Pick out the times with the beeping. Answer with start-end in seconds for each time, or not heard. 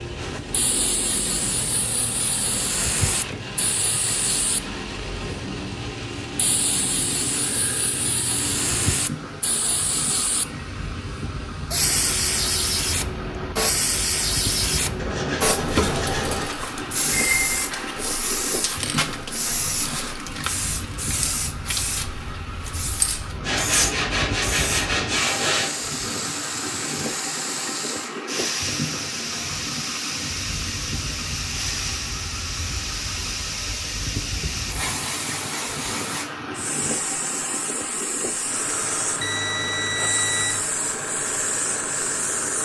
17.1-17.7, 39.2-40.6.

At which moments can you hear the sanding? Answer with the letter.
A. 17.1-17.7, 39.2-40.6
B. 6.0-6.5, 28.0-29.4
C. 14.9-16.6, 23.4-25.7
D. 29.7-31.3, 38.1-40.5
C.